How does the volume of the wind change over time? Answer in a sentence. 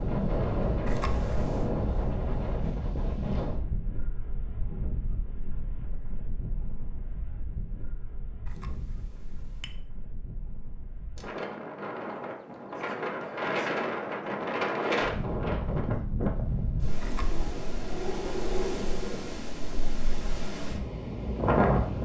The loudness of the wind goes down, then up.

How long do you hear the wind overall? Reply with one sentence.
The wind can be heard for 22 seconds in total.